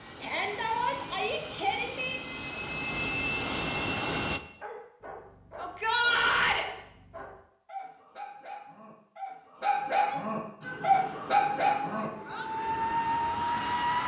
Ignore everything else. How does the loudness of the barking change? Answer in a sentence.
The loudness of the barking goes up.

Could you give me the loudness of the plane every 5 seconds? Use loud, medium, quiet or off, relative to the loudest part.
loud, off, loud.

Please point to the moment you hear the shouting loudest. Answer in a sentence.
The loudest moment of the shouting is at 6 seconds.